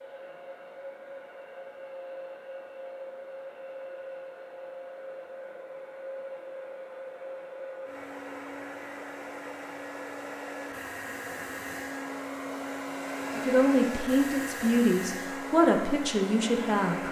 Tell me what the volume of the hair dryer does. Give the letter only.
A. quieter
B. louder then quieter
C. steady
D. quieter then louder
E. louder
E.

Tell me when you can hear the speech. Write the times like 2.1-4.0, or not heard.
13.3-17.0.